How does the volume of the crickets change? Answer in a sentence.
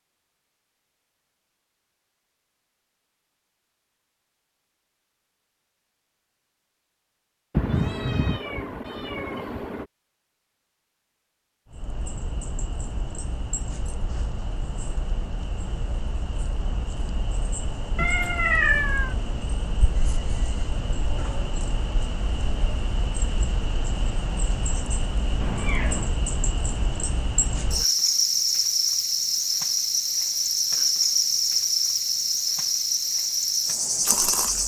The volume of the crickets goes up.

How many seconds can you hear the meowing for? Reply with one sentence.
You can hear the meowing for 4 seconds altogether.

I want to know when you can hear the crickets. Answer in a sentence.
You can hear the crickets from 11.7 to 34.6 s.